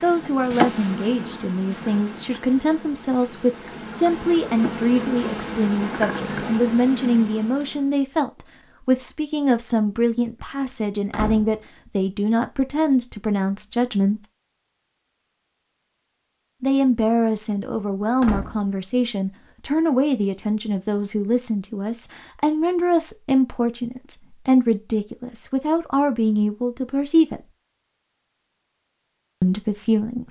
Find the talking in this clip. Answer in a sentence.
You can hear the talking from 0.0 to 14.2 s, from 16.6 to 27.4 s and from 29.4 to 30.2 s.